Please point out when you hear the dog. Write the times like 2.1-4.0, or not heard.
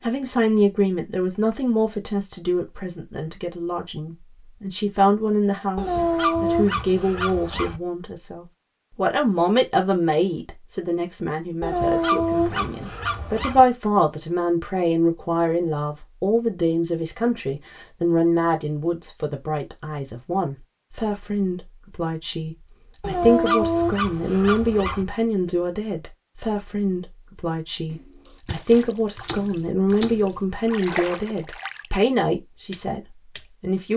5.8-7.8, 11.6-13.7, 23.0-25.1.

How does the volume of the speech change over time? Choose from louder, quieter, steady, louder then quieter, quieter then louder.
steady.